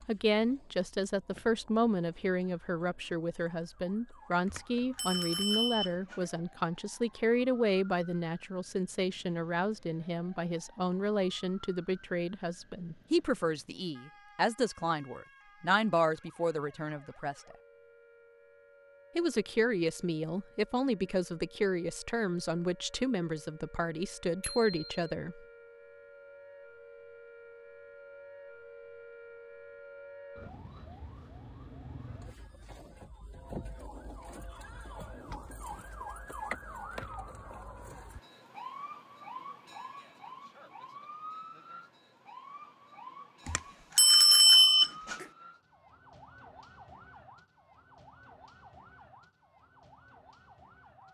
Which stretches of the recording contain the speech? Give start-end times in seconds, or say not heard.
0.1-17.6, 19.1-25.4.